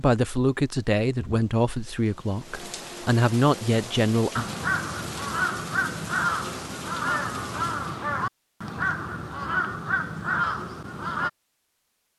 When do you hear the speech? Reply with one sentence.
You can hear the speech from 0.0 to 4.5 s.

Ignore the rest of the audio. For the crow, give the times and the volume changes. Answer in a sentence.
You can hear the crow from 4.3 to 11.3 s, at a steady volume.